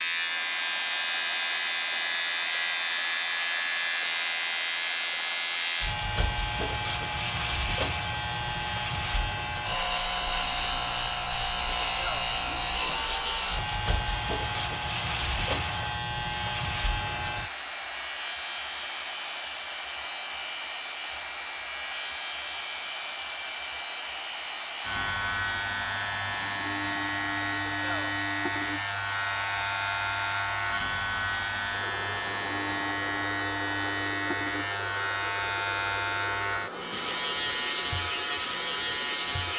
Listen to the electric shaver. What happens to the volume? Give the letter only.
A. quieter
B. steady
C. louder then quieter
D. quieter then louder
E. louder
B.